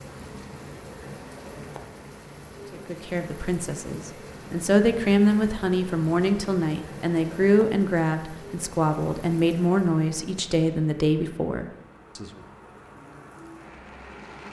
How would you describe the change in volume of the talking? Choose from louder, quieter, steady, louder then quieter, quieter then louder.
steady.